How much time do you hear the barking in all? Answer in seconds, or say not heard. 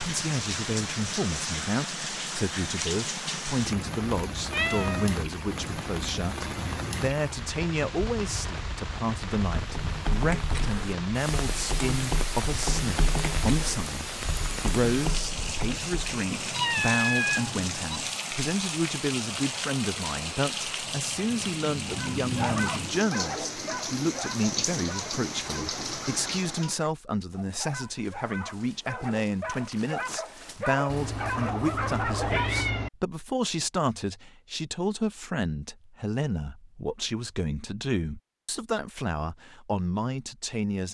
11 s.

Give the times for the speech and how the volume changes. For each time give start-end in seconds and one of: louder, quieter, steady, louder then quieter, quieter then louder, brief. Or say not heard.
0.0-40.8 steady.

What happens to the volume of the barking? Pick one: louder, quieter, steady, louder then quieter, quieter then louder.
quieter then louder.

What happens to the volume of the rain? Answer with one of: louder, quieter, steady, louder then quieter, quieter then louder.
steady.